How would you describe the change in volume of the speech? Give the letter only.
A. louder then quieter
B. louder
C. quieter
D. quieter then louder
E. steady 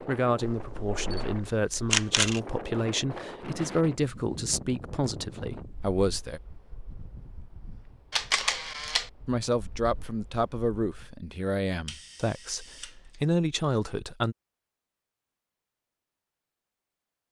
E.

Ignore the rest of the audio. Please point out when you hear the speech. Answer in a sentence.
The speech can be heard from 0.0 to 6.4 s and from 9.2 to 14.3 s.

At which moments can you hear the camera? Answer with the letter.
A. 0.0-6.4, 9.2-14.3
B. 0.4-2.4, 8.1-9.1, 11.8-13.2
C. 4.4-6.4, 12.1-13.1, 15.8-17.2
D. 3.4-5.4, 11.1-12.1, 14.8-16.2
B.